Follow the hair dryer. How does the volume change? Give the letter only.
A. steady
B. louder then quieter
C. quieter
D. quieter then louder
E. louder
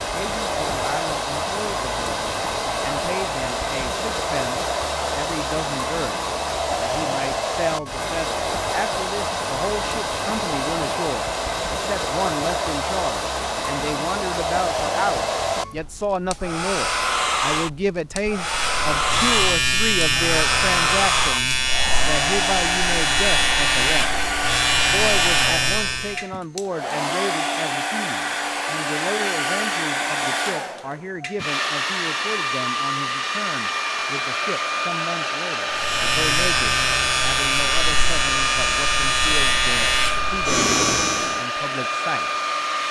A.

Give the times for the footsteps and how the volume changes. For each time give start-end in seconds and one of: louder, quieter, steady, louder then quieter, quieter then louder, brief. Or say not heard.
not heard.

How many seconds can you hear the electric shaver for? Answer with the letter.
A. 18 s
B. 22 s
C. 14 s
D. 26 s
C.